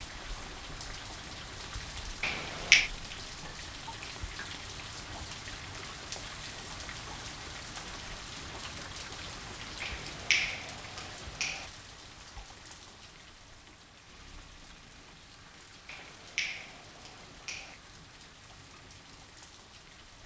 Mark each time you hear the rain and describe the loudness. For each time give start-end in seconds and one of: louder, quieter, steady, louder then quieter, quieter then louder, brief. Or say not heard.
0.0-20.2 quieter.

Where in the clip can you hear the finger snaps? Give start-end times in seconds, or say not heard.
2.2-2.9, 9.8-11.7, 15.8-17.8.